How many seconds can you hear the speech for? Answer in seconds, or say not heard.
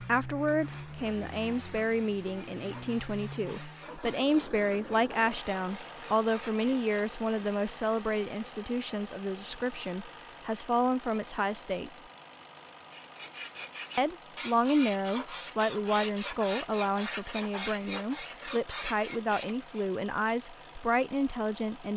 20 s.